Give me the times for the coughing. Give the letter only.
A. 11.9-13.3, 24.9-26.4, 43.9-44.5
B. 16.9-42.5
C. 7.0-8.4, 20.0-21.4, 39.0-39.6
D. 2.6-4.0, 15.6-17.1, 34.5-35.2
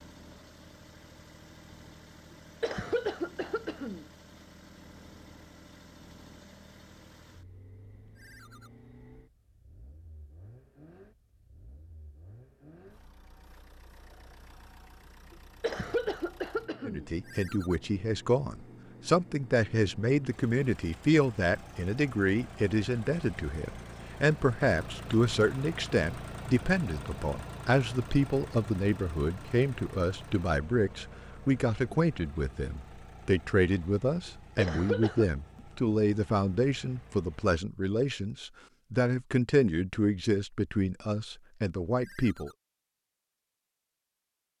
D.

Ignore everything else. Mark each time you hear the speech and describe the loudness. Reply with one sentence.
You can hear the speech from 16.9 to 42.5 s, at a steady volume.